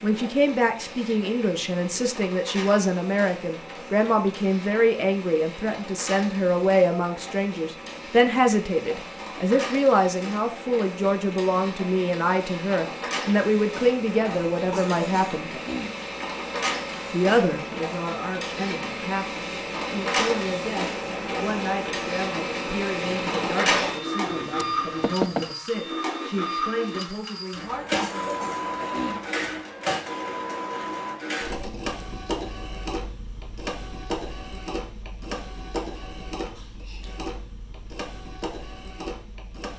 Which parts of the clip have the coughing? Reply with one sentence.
You can hear the coughing from 14.5 to 16.0 s and from 27.6 to 29.6 s.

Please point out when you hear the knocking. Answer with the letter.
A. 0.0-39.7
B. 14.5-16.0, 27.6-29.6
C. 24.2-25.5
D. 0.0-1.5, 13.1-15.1
C.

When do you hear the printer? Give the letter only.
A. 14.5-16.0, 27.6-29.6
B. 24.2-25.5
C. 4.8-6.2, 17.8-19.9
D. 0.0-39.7
D.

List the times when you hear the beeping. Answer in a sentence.
You can't hear the beeping here.